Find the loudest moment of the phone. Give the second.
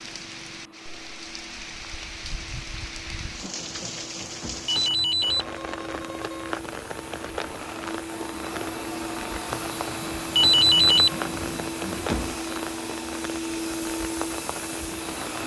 11 s.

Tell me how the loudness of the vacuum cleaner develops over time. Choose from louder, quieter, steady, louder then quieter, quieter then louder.
louder.